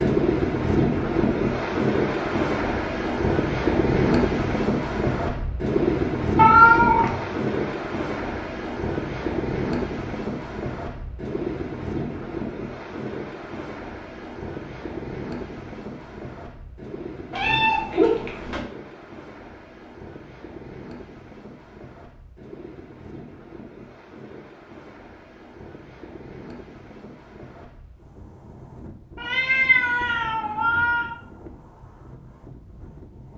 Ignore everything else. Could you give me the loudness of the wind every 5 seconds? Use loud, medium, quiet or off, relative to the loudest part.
loud, loud, medium, quiet, quiet, quiet, quiet.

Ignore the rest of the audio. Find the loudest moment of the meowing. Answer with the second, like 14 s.
7 s.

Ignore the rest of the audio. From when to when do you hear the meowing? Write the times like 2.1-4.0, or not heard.
6.3-7.2, 17.3-18.6, 29.1-31.1.